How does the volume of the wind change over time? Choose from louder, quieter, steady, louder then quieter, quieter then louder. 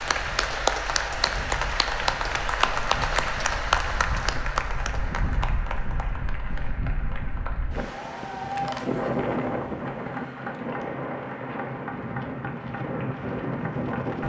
louder.